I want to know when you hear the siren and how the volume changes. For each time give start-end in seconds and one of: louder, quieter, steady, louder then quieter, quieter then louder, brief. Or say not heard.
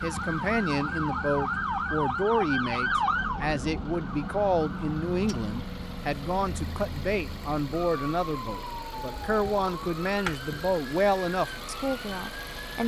0.0-12.8 quieter.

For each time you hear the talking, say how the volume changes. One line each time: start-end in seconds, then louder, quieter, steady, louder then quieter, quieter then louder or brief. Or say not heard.
0.0-12.8 steady.